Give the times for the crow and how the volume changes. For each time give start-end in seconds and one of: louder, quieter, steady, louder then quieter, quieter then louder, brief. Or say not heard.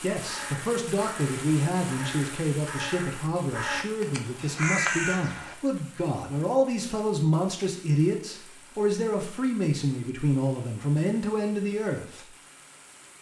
0.1-5.5 louder.